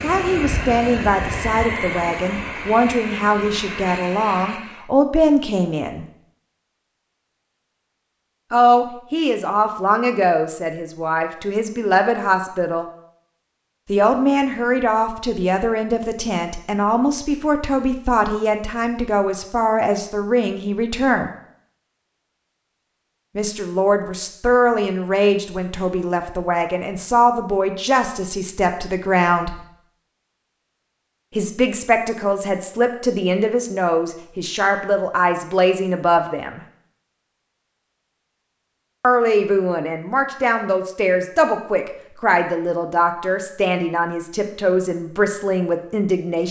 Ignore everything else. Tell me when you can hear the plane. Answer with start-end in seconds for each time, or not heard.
0.0-4.9.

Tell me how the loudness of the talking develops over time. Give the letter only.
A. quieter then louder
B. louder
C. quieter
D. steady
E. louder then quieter
D.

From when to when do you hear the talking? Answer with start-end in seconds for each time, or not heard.
0.0-6.0, 8.5-12.8, 13.8-21.3, 23.4-29.6, 31.4-36.6, 39.0-46.4.